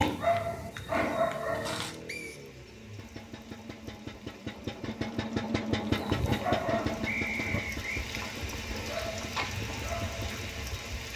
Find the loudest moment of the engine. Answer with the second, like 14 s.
6 s.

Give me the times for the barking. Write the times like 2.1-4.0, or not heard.
0.0-1.9, 5.9-10.8.